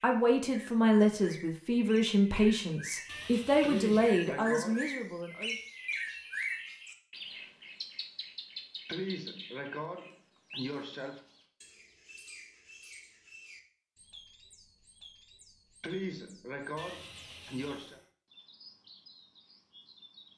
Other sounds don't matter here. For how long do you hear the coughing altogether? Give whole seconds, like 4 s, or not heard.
6 s.